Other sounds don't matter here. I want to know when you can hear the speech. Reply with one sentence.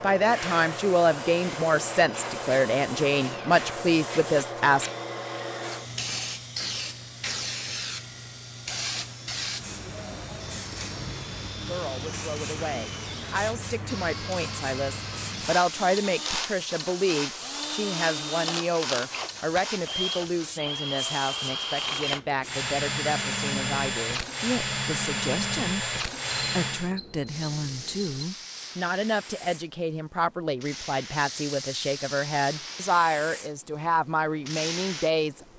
You can hear the speech from 0.0 to 4.9 s and from 11.7 to 35.5 s.